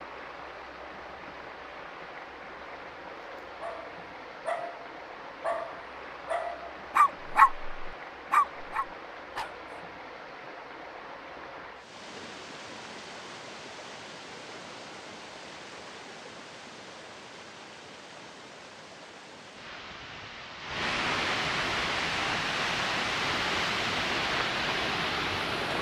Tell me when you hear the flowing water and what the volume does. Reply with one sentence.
You can hear the flowing water from 0.0 to 25.7 s, getting louder.